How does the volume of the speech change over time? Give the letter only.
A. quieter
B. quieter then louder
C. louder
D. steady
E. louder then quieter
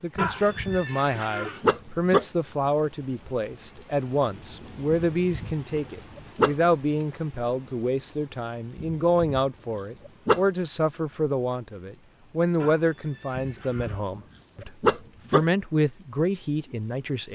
D.